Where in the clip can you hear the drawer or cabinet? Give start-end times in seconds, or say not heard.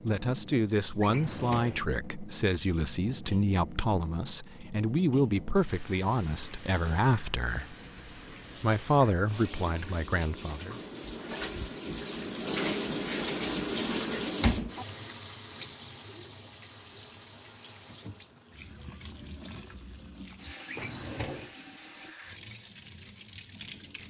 1.0-1.9, 20.6-21.6.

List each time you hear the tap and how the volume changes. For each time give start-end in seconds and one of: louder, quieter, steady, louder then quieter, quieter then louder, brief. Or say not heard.
0.0-24.0 louder then quieter.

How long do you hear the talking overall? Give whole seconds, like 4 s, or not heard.
10 s.